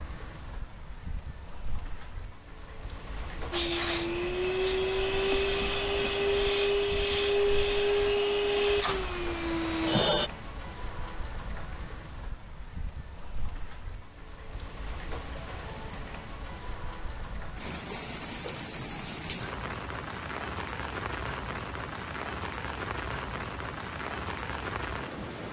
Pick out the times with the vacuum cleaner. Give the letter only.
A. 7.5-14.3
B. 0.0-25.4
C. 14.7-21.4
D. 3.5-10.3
D.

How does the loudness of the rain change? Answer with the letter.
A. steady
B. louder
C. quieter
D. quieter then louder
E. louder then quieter
B.